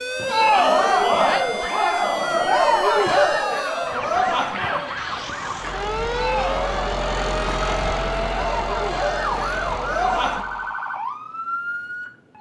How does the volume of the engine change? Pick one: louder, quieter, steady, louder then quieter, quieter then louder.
louder then quieter.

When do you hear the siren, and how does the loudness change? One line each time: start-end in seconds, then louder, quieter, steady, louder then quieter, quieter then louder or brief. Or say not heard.
0.0-12.3 steady.